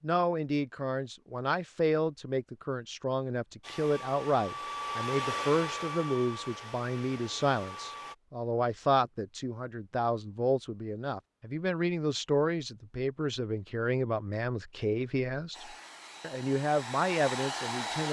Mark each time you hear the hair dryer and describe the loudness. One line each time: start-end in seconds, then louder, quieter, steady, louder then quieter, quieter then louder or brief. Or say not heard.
3.6-8.2 louder then quieter
15.5-18.0 brief.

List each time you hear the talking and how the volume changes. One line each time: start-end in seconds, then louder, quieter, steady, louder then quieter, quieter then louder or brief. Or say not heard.
0.0-18.0 steady.